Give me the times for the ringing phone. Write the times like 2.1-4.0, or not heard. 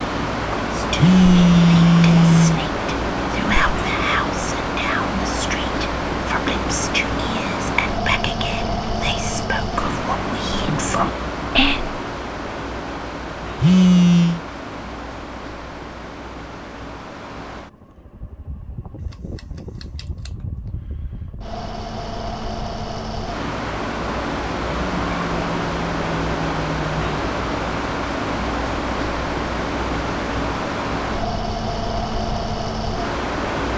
0.9-2.6, 13.6-14.4, 24.6-27.0.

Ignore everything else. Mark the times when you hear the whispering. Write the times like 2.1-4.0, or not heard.
0.6-11.9.